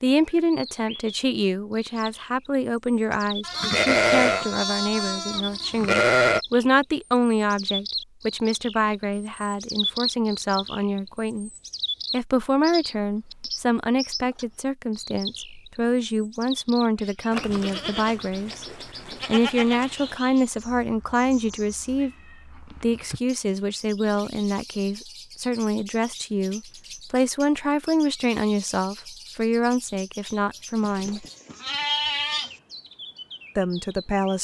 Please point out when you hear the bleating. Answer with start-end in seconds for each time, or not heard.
3.4-6.4, 17.3-20.1, 31.1-32.5.